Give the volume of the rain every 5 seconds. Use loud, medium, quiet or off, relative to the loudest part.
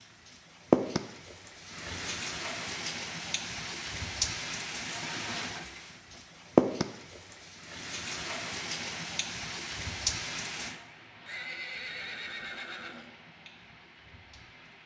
loud, loud, medium.